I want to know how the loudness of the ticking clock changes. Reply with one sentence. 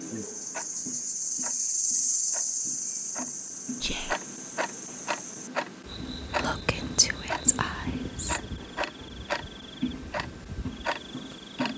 The loudness of the ticking clock goes up.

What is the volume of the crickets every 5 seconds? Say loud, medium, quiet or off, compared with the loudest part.
loud, quiet, quiet.